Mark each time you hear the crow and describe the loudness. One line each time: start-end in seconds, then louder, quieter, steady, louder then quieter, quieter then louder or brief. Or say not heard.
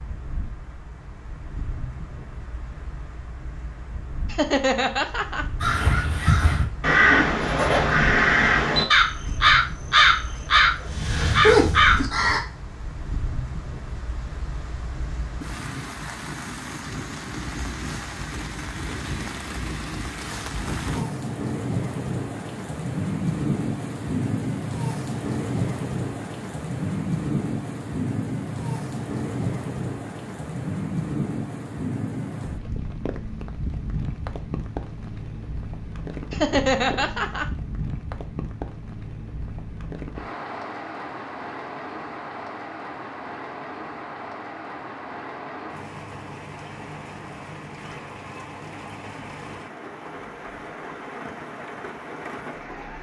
5.6-12.4 steady.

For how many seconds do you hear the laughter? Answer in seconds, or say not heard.
2 s.